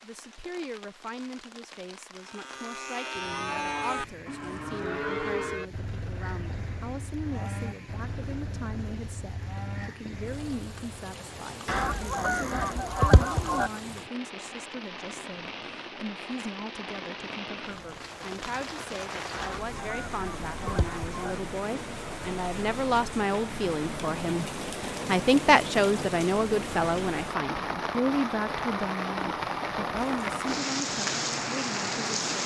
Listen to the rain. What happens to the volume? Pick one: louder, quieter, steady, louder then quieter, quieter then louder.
louder.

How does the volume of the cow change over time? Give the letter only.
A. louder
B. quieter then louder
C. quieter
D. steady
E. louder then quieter
C.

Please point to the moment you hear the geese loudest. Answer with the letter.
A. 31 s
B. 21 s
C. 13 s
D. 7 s
C.